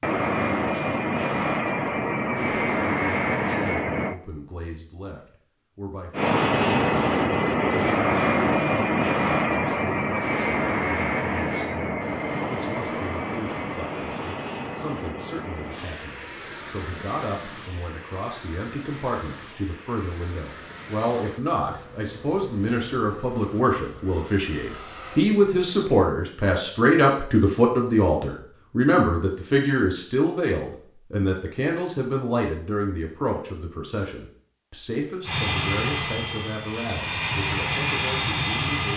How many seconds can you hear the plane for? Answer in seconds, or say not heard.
28 s.